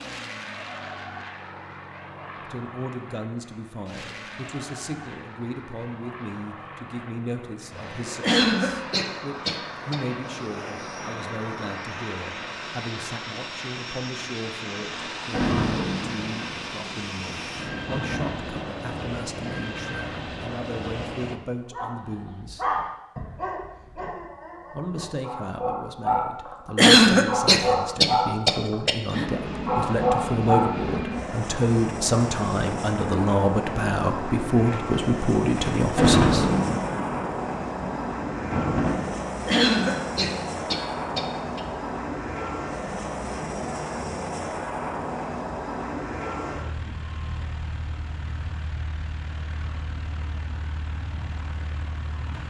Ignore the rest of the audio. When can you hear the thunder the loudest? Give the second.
36 s.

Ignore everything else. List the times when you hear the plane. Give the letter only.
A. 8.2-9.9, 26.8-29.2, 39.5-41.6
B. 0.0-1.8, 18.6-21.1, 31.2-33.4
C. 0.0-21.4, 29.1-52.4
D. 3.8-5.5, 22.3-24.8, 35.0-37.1
C.